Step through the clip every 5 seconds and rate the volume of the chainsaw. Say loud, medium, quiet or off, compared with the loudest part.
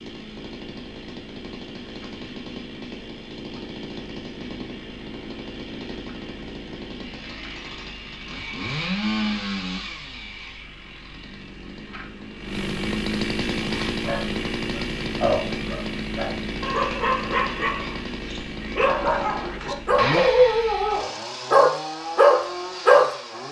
medium, loud, loud, loud, loud.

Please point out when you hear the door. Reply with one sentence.
You can't hear the door here.